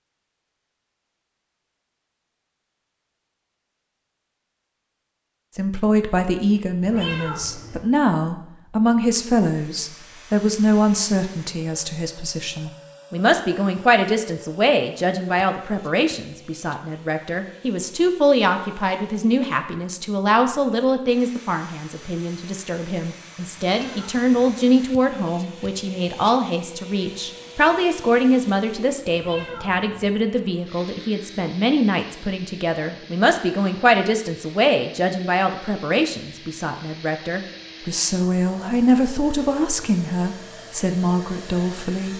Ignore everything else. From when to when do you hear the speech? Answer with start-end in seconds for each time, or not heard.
5.5-42.1.